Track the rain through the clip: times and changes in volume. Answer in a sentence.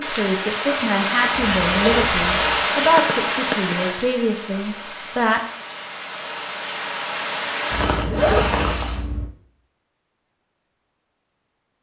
The rain can be heard from 0.0 to 9.1 s, getting quieter then louder.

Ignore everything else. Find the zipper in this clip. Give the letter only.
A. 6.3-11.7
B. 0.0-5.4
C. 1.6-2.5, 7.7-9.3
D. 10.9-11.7
C.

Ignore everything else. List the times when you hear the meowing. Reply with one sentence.
You can hear the meowing from 3.0 to 3.8 s.